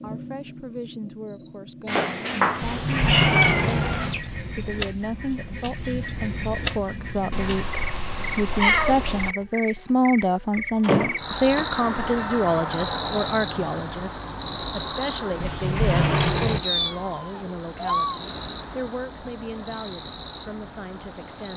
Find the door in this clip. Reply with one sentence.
You can hear the door from 2.6 to 4.3 s, from 10.8 to 11.7 s and from 15.4 to 16.6 s.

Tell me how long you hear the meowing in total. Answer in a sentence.
You can hear the meowing for 6 seconds altogether.